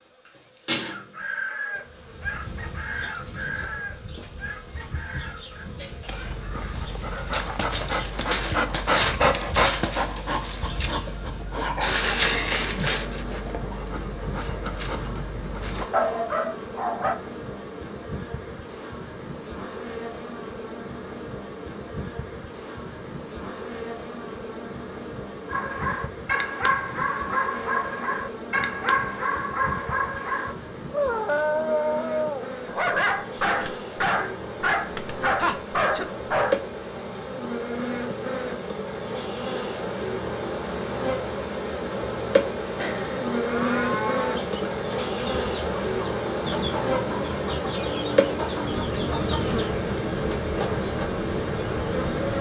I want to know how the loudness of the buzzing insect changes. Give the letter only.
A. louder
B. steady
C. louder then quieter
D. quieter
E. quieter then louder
A.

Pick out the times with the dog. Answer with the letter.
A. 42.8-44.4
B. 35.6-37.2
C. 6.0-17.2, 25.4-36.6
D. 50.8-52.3
C.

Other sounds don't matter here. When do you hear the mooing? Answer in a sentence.
You can hear the mooing from 42.8 to 44.4 s.